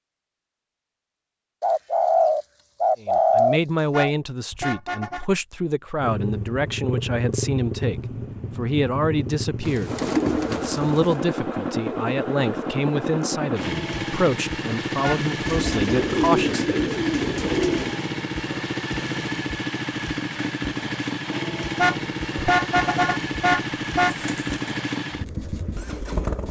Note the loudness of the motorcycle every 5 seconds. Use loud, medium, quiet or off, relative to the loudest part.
off, loud, loud, loud, loud, loud.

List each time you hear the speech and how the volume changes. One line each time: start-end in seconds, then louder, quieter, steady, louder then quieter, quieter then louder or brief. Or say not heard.
3.0-16.8 steady.